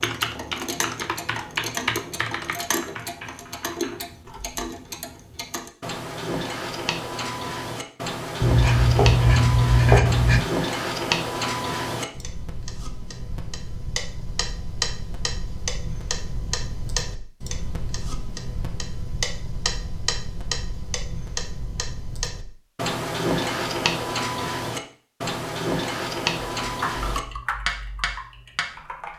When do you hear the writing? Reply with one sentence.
You can hear the writing from 8.4 to 10.4 s.